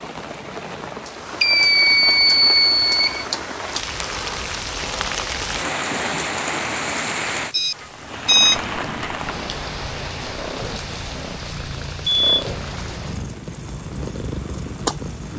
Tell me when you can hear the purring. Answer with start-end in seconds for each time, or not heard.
8.8-15.3.